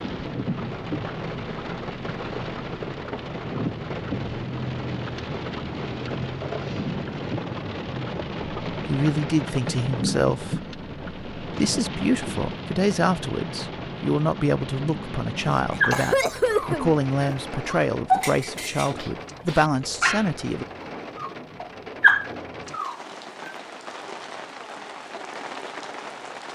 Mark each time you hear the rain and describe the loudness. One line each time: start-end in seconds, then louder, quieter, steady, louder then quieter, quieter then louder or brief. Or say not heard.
0.0-26.5 quieter.